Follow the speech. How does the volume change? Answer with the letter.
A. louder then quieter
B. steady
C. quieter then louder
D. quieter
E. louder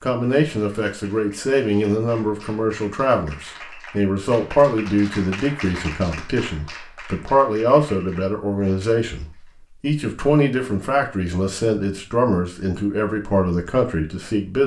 B.